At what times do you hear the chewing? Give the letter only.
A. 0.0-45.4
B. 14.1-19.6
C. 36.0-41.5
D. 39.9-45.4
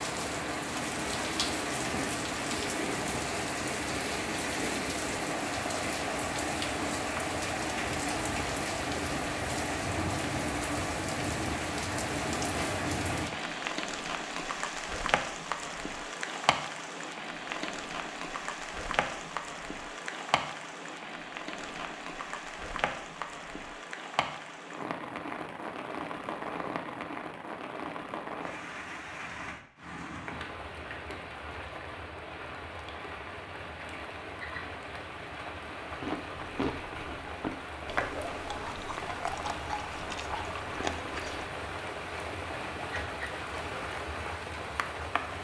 C.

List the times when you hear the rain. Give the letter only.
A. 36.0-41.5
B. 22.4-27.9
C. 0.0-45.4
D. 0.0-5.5
C.